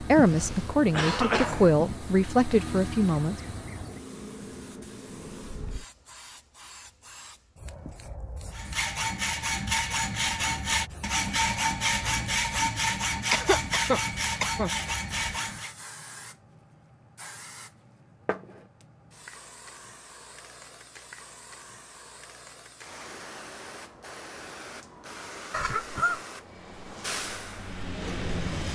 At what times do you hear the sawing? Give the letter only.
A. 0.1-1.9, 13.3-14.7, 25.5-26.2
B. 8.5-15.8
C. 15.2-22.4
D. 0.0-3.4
B.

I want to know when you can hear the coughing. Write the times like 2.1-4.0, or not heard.
0.1-1.9, 13.3-14.7, 25.5-26.2.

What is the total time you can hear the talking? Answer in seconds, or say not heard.
3 s.